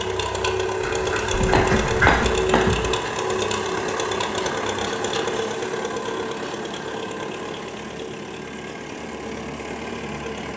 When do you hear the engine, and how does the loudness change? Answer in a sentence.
You can hear the engine from 0.0 to 10.5 s, getting quieter.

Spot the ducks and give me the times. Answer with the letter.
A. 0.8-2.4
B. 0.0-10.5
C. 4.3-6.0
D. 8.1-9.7
A.